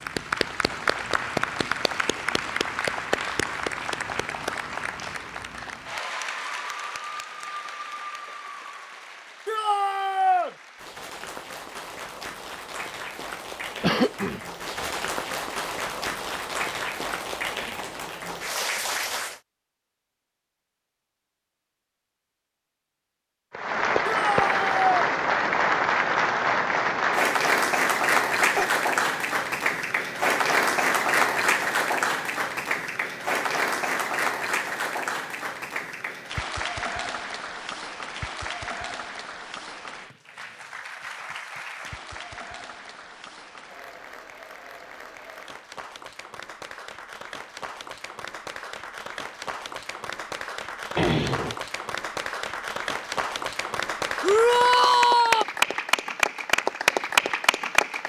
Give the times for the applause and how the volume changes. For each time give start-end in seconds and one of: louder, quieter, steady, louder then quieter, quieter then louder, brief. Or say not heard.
0.0-19.4 quieter then louder
23.5-58.0 quieter then louder.